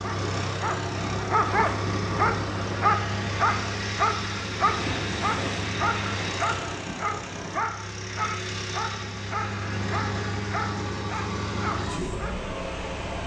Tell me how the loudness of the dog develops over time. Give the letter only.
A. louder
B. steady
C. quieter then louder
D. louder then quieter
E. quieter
E.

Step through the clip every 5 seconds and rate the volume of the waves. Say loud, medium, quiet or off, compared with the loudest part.
loud, loud, off.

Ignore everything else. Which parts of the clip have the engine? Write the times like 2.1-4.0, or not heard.
0.0-13.2.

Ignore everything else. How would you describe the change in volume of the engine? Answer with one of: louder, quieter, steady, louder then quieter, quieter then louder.
steady.